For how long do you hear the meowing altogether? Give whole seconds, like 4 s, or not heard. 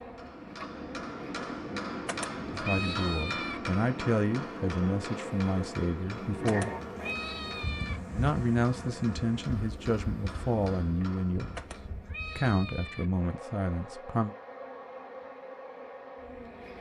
5 s.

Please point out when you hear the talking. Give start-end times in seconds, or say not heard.
2.5-6.8, 8.2-11.6, 12.3-14.3.